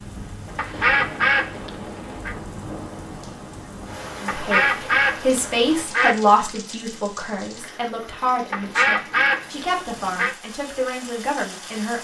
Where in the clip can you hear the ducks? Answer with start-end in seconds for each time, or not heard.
0.6-2.4, 4.2-6.2, 8.5-10.3.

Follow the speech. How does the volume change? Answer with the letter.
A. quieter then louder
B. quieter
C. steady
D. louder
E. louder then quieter
B.